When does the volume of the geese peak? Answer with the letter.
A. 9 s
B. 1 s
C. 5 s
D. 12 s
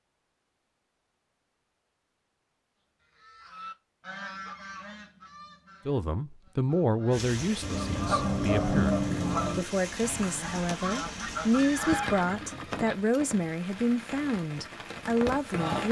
A.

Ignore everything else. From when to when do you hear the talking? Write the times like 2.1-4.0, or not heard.
5.8-15.8.